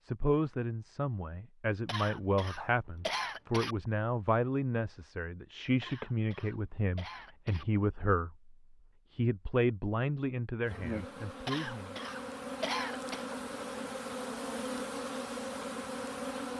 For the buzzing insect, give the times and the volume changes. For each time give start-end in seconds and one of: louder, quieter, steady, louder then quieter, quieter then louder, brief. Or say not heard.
10.6-16.5 louder.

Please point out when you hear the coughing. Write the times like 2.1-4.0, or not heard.
1.9-3.8, 5.8-7.7, 11.4-13.2.